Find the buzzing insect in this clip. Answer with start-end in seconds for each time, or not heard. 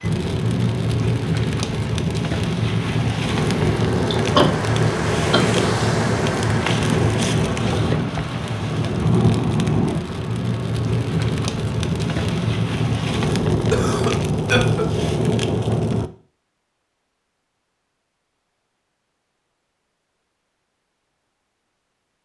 not heard.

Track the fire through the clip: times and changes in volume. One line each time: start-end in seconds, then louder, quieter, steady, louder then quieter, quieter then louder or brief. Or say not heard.
0.0-16.1 steady.